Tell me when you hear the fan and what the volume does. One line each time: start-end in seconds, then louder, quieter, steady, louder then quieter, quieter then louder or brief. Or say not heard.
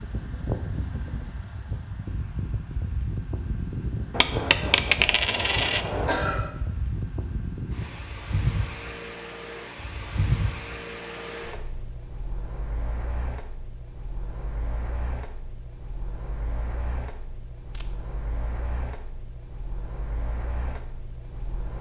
0.0-21.7 quieter.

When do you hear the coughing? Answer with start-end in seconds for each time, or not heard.
5.2-6.4.